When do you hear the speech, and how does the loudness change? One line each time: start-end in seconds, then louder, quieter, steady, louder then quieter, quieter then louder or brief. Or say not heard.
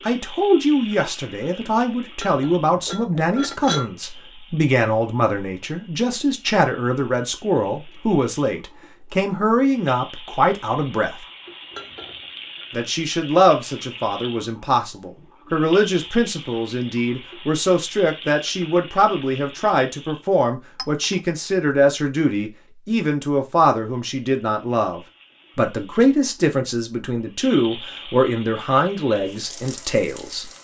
0.0-11.2 steady
12.7-30.5 steady.